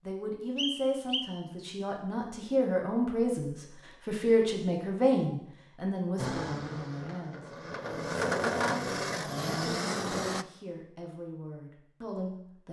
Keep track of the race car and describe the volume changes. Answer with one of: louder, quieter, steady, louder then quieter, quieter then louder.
louder.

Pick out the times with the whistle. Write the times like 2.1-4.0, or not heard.
0.6-1.2.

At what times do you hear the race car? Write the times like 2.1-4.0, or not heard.
6.2-10.4.